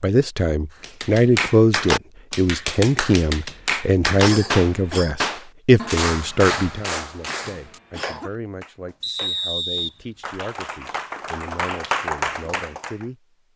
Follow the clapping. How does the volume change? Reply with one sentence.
The volume of the clapping goes down, then up.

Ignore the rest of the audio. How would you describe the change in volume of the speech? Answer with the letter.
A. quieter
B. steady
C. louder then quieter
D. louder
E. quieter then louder
A.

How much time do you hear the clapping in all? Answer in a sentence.
You can hear the clapping for 12 seconds altogether.